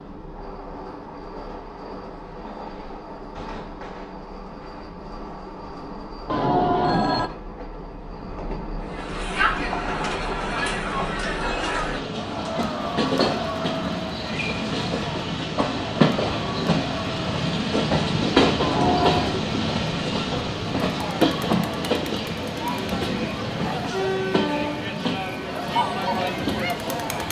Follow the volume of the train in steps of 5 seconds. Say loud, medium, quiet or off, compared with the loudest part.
quiet, quiet, medium, loud, loud, medium.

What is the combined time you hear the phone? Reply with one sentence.
The phone can be heard for 3 seconds in total.